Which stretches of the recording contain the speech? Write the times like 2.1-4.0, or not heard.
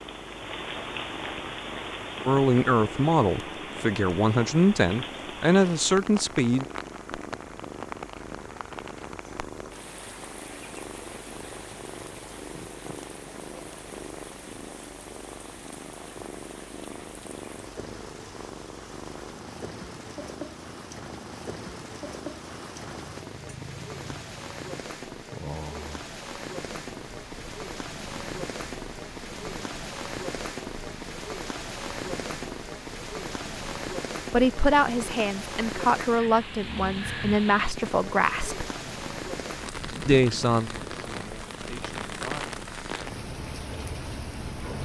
2.2-6.7, 34.3-38.6, 40.0-42.5.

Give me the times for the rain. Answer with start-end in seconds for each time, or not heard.
0.0-44.8.